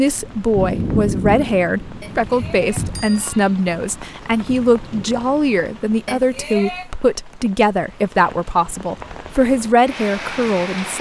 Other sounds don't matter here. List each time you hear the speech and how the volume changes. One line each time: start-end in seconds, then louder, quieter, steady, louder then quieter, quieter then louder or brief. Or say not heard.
0.0-10.9 steady.